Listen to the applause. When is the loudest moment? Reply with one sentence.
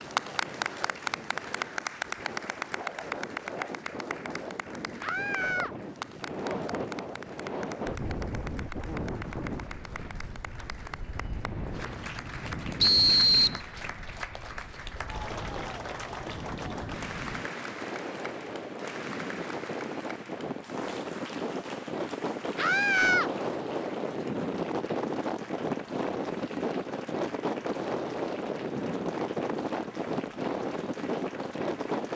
The volume of the applause peaks at 1 second.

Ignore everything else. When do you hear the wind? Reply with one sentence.
The wind can be heard from 0.0 to 32.1 s.